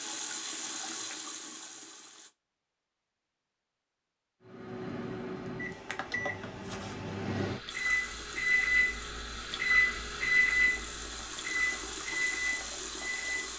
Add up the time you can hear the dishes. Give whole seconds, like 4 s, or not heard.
not heard.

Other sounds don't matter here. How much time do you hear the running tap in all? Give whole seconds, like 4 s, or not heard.
8 s.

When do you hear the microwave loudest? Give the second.
10 s.